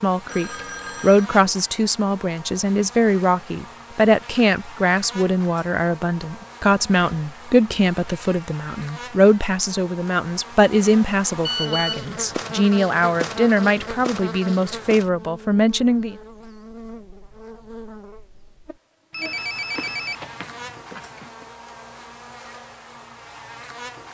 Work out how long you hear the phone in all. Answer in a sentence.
The phone can be heard for 4 seconds in total.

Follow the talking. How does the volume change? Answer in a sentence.
The loudness of the talking stays about the same.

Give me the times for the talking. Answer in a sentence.
The talking can be heard from 0.0 to 16.1 s.